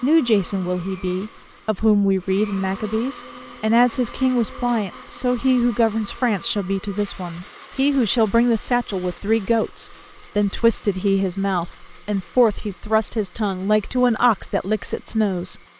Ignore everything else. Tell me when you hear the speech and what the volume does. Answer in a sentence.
The speech can be heard from 0.0 to 15.6 s, at a steady volume.